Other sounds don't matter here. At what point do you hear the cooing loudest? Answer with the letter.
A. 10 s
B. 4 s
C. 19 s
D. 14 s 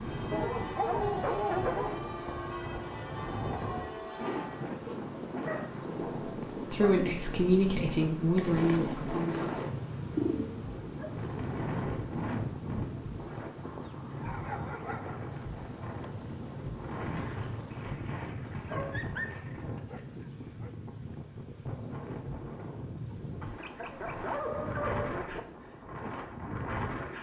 A.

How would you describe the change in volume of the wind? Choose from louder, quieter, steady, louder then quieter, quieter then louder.
steady.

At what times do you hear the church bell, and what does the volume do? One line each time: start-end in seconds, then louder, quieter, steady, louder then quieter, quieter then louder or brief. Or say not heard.
0.0-4.7 steady.